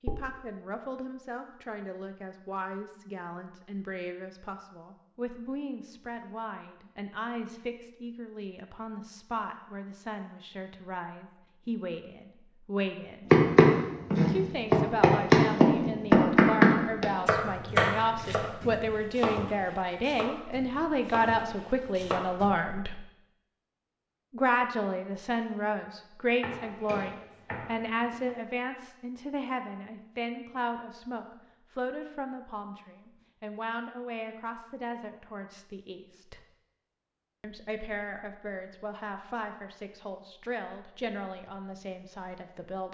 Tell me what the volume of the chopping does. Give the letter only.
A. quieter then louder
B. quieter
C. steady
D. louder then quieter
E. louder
B.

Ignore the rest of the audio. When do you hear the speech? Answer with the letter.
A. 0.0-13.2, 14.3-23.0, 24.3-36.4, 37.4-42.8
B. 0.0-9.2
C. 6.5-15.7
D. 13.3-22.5
A.